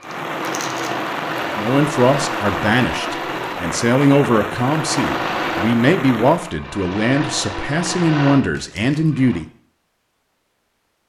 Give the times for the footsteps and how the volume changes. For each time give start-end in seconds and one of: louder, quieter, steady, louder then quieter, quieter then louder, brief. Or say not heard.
not heard.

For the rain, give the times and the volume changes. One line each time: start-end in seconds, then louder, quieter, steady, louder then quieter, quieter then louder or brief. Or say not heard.
0.0-6.5 steady.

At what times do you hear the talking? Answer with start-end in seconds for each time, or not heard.
1.6-9.4.